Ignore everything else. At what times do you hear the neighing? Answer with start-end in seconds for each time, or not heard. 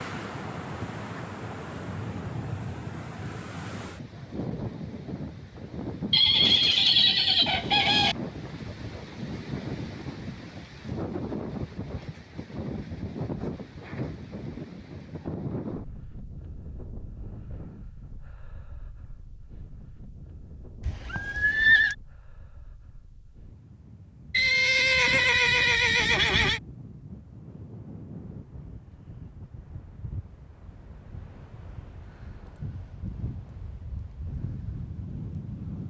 6.1-8.2, 20.8-21.9, 24.3-26.6.